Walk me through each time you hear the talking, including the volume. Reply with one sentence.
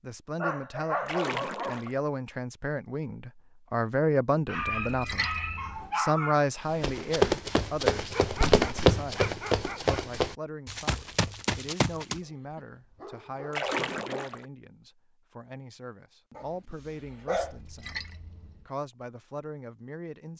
The talking can be heard from 0.0 to 5.3 s, getting louder; and from 6.0 to 20.3 s, getting quieter.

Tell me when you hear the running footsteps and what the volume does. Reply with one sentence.
The running footsteps can be heard from 6.7 to 12.2 s, getting quieter.